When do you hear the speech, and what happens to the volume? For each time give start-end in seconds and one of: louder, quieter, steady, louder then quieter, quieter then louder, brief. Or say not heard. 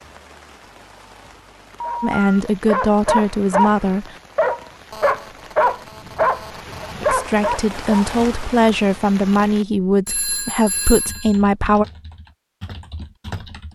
2.0-4.2 brief
7.0-11.8 steady.